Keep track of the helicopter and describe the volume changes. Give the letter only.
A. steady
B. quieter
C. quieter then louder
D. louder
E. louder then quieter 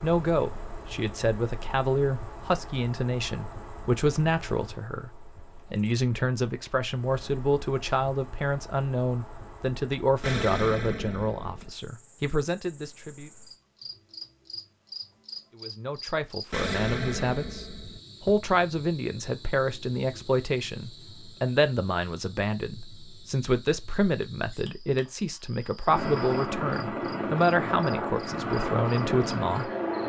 A.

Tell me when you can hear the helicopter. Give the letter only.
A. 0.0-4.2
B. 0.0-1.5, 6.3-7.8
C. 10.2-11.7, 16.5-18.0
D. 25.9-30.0
D.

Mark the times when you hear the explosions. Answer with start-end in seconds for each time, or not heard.
10.2-11.7, 16.5-18.0.